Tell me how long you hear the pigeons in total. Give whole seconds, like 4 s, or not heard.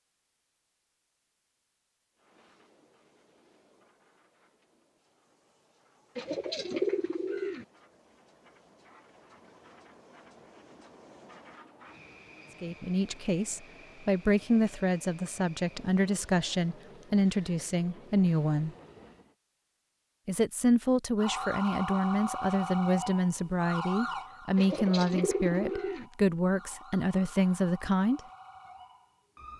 3 s.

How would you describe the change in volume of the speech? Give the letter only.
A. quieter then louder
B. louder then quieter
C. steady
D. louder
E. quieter
C.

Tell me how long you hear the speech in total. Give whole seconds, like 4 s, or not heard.
14 s.